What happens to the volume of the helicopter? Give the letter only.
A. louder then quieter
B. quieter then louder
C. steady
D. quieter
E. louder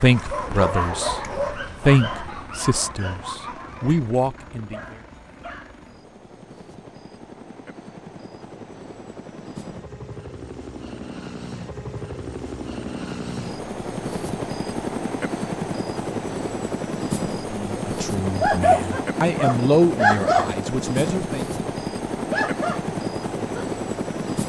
E.